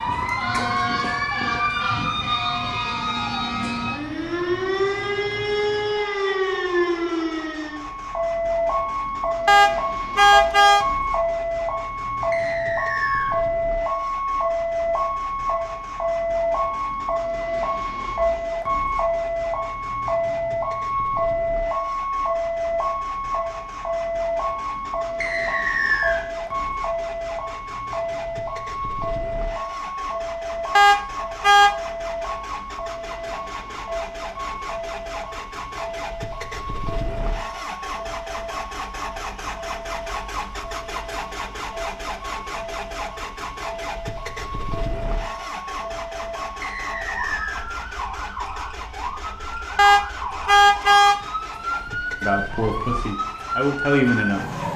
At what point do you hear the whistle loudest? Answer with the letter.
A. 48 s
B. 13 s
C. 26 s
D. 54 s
C.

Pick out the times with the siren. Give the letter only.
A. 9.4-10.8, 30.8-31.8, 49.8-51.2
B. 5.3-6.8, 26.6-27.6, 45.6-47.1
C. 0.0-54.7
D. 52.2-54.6
C.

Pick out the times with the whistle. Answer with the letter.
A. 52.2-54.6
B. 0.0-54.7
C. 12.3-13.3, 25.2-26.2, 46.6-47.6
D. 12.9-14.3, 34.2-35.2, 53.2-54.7
C.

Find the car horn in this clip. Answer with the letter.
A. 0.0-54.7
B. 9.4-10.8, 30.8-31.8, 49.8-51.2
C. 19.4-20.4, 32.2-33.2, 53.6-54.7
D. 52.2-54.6
B.